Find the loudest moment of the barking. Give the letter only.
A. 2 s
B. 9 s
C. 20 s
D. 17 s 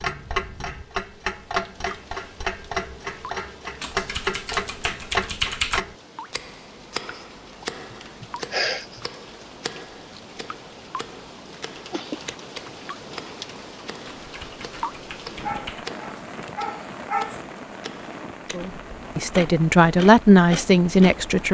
D.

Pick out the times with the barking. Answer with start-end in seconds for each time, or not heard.
15.4-17.4.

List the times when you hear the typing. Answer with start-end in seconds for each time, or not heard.
3.8-5.8, 14.2-15.9.